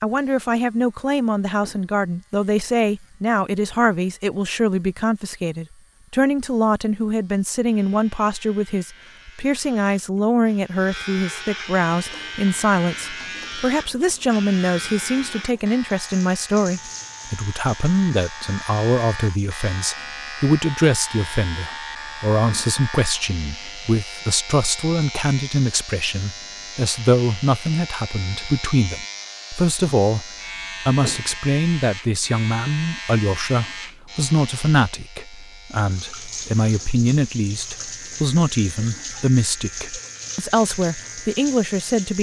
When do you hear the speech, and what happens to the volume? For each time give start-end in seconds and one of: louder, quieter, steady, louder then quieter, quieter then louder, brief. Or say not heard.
0.0-42.1 steady.